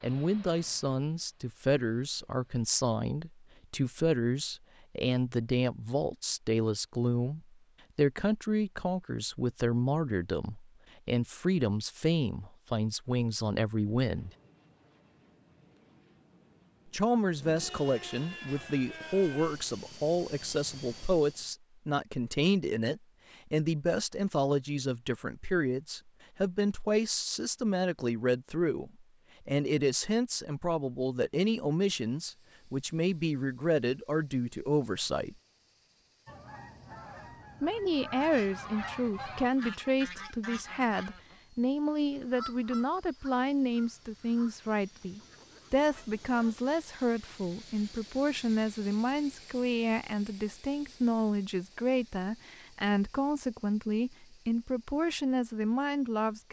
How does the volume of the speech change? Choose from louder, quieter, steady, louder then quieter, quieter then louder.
steady.